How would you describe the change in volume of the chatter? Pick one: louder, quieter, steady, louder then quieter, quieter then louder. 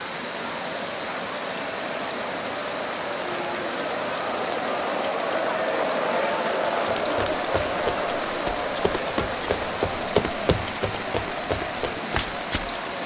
louder then quieter.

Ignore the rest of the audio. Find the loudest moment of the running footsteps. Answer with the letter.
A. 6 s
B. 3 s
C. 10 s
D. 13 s
C.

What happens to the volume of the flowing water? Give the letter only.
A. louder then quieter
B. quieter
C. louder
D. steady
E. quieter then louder
D.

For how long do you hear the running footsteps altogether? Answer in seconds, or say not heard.
6 s.